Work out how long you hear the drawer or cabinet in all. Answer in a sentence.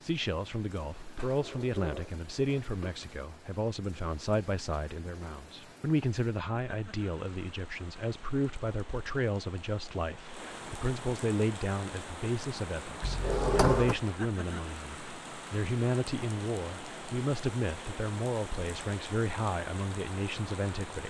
The drawer or cabinet can be heard for 3 seconds in total.